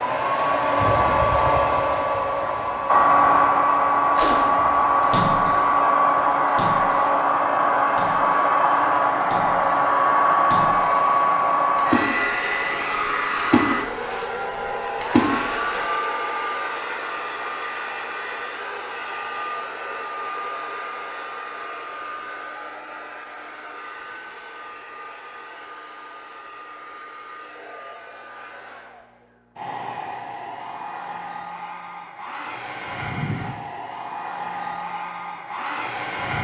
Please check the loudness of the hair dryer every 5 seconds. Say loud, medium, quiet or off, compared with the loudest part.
loud, loud, loud, medium, quiet, quiet, quiet, medium.